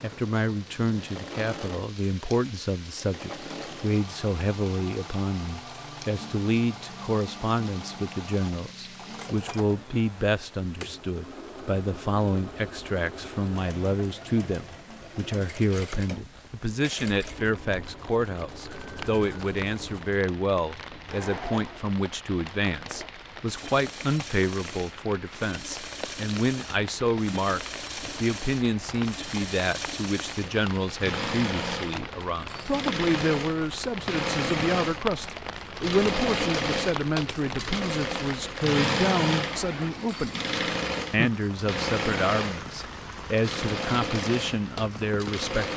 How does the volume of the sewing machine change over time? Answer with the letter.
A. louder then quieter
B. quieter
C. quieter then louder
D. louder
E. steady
D.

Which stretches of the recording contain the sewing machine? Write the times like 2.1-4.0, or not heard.
0.0-45.7.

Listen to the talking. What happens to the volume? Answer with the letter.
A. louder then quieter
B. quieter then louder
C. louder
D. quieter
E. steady
E.